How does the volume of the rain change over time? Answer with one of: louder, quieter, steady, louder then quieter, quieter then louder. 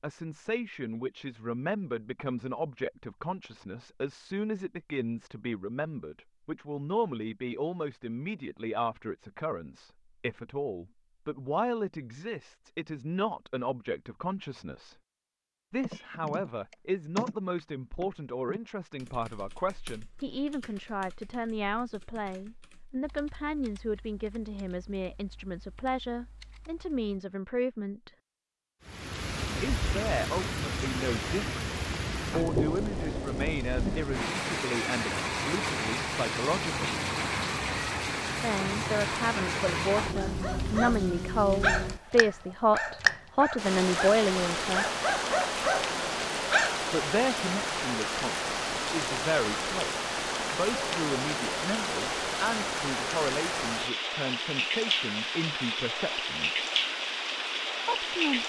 steady.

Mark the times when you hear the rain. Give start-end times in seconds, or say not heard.
28.9-58.4.